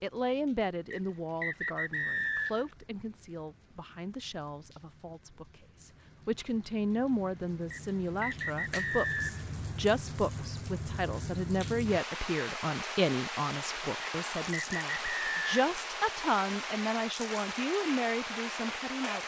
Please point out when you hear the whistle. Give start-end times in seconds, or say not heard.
0.9-2.7, 7.7-9.4, 14.0-15.8.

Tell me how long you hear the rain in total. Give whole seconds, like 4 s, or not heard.
19 s.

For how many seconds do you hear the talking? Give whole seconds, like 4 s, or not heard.
19 s.